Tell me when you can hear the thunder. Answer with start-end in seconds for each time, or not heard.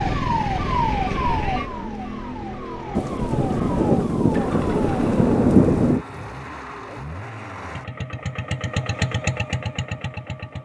3.0-6.0.